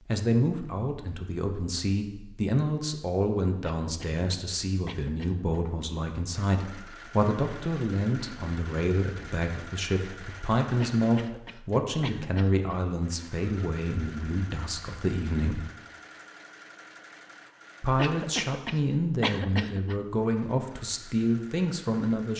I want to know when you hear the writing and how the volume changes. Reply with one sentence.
You can't hear the writing here.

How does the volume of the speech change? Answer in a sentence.
The volume of the speech stays about the same.